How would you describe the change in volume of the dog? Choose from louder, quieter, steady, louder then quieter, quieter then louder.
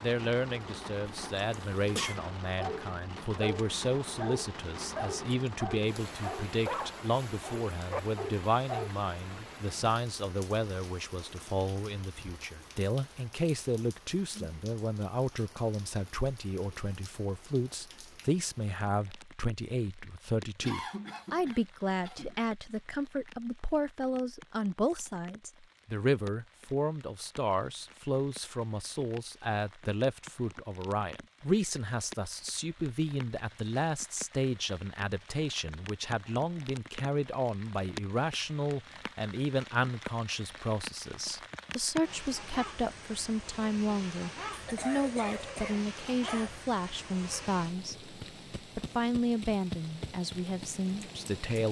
steady.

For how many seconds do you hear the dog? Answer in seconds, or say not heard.
6 s.